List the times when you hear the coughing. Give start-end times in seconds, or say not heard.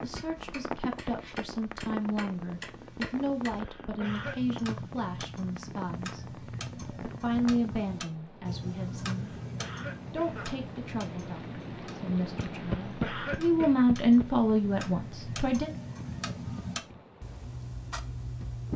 3.5-4.3, 9.1-10.7, 12.6-13.8.